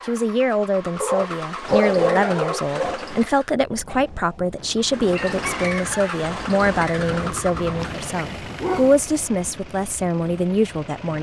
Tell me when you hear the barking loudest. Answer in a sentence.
The loudest moment of the barking is at 2 seconds.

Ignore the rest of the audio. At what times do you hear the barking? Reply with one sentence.
You can hear the barking from 1.0 to 3.0 s and from 7.8 to 8.9 s.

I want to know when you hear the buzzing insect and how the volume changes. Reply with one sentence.
You can't hear the buzzing insect here.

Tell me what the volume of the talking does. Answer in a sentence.
The volume of the talking stays about the same.